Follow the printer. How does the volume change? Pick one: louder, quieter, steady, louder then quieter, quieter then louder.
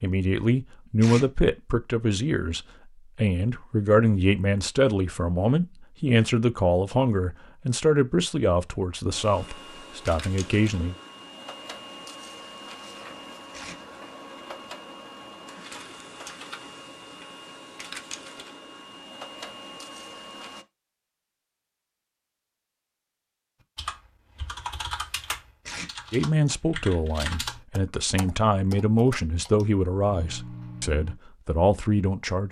steady.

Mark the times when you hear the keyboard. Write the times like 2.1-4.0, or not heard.
23.8-31.1.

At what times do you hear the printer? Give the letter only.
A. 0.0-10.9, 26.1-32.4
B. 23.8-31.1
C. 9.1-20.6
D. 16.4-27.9
C.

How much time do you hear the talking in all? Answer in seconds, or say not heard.
17 s.